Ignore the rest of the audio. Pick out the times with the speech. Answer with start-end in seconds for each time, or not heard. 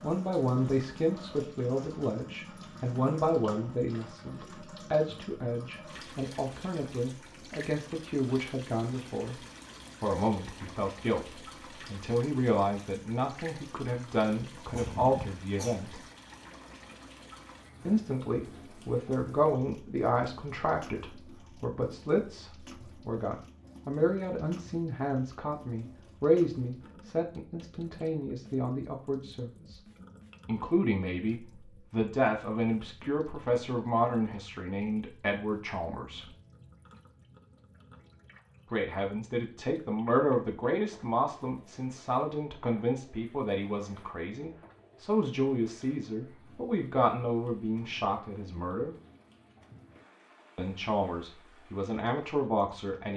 0.0-9.4, 10.0-16.0, 17.9-29.8, 30.4-36.2, 38.7-49.0, 50.5-53.1.